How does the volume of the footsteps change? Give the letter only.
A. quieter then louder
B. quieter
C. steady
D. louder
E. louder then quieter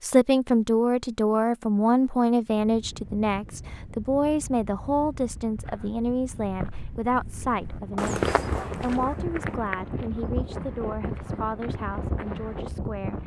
E.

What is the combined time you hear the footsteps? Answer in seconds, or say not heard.
7 s.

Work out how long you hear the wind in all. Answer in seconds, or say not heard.
11 s.